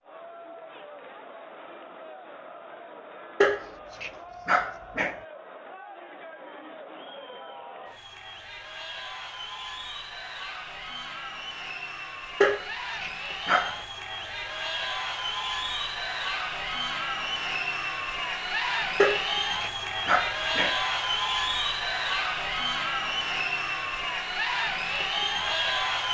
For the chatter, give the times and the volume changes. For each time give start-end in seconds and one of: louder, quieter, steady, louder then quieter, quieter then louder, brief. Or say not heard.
0.0-26.0 louder.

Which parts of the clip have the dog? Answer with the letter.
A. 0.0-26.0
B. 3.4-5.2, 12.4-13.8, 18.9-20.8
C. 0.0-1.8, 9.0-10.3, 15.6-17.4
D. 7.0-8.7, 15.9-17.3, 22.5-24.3
B.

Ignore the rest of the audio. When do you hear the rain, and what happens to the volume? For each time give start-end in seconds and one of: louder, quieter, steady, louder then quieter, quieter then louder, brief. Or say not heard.
not heard.